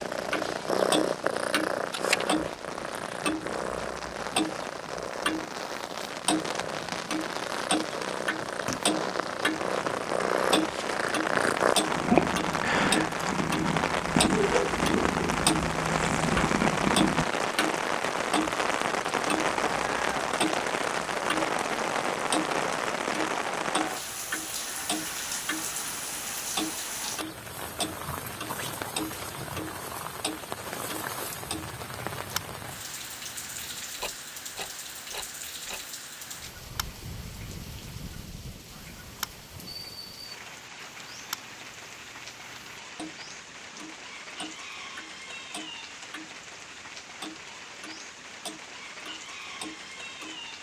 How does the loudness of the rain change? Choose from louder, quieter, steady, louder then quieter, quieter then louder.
louder then quieter.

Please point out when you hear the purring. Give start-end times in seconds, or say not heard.
0.0-17.2.